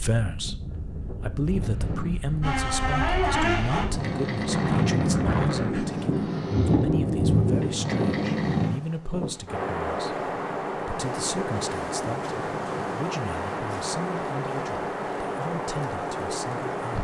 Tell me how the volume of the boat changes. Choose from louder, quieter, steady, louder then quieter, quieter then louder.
steady.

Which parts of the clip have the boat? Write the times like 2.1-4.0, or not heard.
2.4-8.7.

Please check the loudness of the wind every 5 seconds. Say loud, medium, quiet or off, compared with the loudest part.
medium, loud, loud, loud.